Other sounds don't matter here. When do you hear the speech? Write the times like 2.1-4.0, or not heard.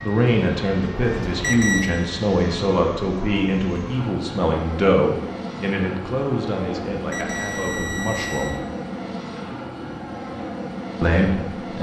0.0-8.6, 11.0-11.7.